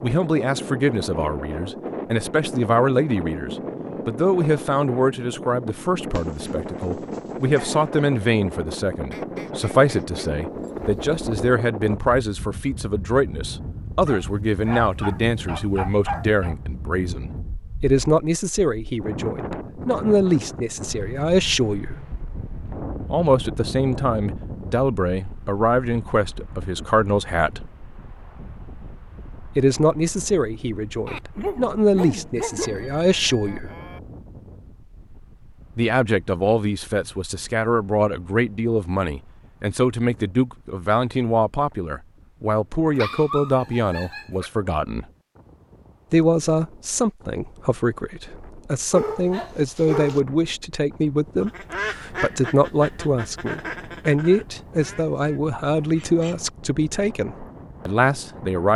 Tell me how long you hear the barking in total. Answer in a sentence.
The barking can be heard for 9 seconds in total.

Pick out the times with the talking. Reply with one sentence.
The talking can be heard from 0.0 to 22.0 s, from 23.1 to 27.7 s, from 29.6 to 33.7 s, from 35.8 to 45.0 s and from 46.1 to 58.7 s.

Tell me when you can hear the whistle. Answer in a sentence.
You can't hear the whistle here.